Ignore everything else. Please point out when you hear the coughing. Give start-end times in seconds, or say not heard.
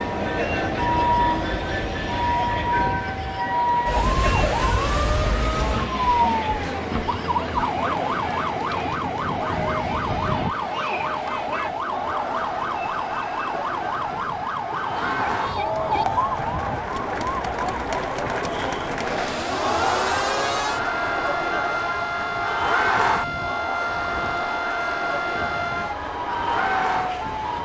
not heard.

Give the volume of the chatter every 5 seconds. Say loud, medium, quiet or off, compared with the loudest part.
medium, medium, medium, loud, loud, loud.